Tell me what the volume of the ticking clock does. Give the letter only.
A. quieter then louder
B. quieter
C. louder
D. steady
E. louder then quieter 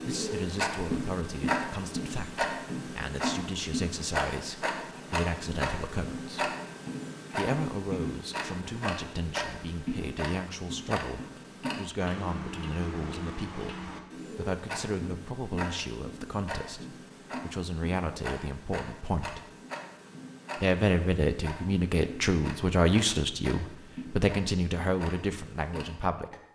B.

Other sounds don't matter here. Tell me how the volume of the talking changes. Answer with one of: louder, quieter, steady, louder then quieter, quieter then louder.
louder.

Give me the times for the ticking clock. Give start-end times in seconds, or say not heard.
0.0-26.4.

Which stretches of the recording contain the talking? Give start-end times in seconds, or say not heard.
0.1-6.5, 7.3-19.4, 20.6-26.4.